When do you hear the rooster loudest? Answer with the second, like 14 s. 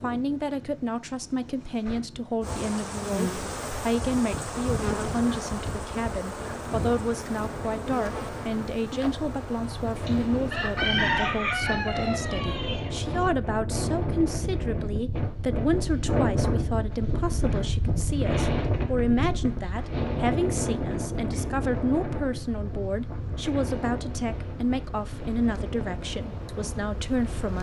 11 s.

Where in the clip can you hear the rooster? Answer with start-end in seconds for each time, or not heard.
10.1-12.9.